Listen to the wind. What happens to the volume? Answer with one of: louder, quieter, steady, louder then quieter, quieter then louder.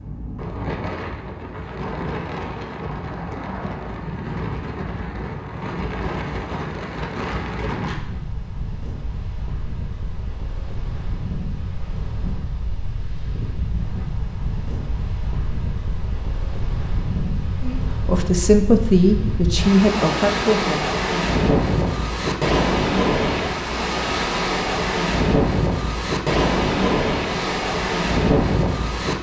louder.